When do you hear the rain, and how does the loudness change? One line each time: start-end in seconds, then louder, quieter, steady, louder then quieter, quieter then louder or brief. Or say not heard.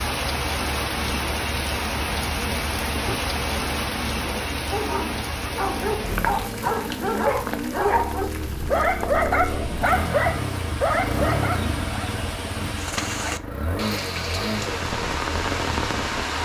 0.0-16.3 quieter then louder.